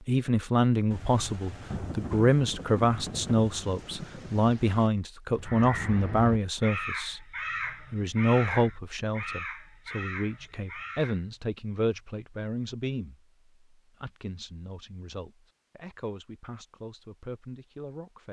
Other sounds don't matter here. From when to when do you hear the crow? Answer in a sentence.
You can hear the crow from 5.3 to 11.2 s.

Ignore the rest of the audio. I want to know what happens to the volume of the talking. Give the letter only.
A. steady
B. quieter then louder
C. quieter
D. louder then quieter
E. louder
C.